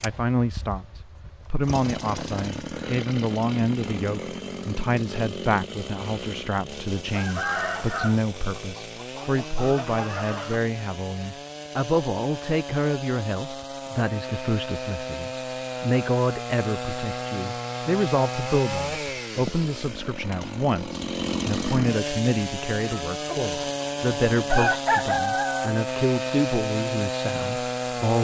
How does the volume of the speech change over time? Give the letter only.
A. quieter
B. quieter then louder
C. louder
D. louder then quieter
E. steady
E.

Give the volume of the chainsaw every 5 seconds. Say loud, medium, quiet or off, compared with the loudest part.
medium, medium, medium, loud, loud, loud.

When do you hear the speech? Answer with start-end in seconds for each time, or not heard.
0.0-28.1.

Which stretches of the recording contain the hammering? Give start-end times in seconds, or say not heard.
not heard.